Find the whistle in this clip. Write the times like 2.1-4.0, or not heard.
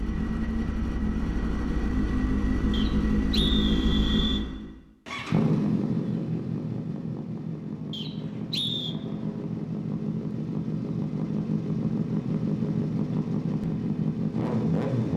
2.7-4.5, 7.9-8.9.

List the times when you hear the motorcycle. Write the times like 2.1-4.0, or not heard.
0.0-15.1.